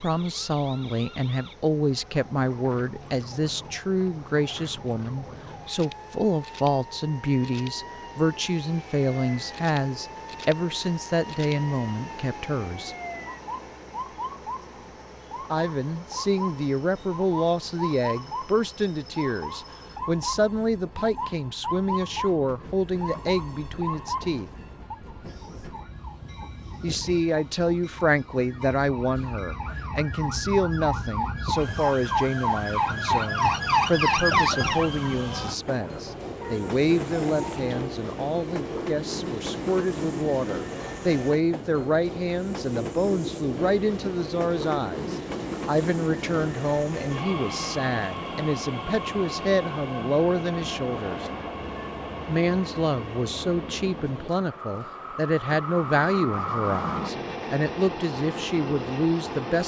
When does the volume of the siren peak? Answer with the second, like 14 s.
34 s.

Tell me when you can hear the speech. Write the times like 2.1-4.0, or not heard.
0.0-12.9, 15.5-24.5, 26.8-51.3, 52.2-59.6.